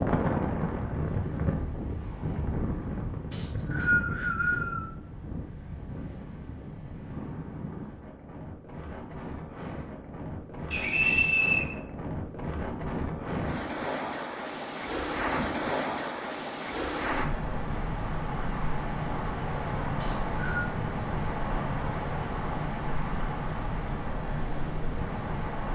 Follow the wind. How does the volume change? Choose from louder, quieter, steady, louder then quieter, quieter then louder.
quieter then louder.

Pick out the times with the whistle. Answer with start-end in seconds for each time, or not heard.
3.3-4.9, 10.7-11.7, 20.0-20.6.